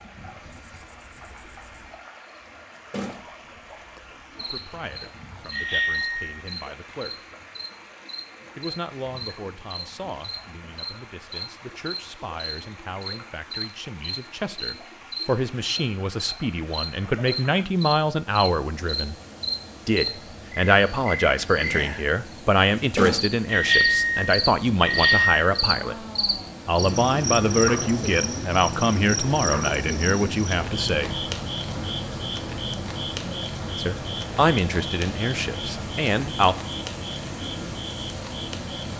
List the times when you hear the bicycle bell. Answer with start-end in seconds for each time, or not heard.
5.5-6.5, 23.4-25.4.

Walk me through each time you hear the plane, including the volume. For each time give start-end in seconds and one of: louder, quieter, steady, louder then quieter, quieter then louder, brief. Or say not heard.
not heard.